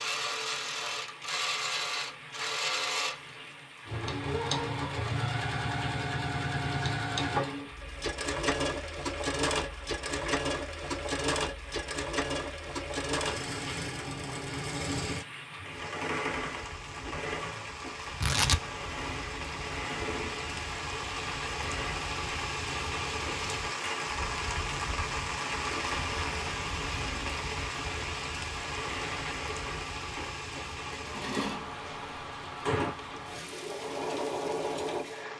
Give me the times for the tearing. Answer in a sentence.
You can hear the tearing from 18.2 to 19.1 s.